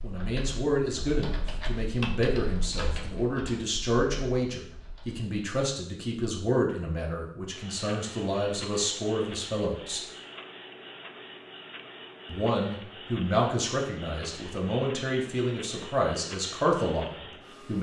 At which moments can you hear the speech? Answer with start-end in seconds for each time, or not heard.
0.0-10.0, 12.2-17.7.